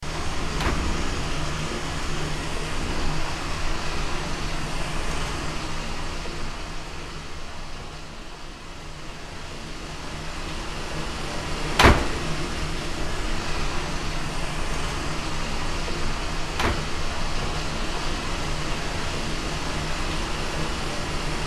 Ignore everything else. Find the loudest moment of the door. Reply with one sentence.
The loudest moment of the door is at 12 seconds.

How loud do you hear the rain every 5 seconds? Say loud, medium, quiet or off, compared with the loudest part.
loud, medium, loud, loud, loud.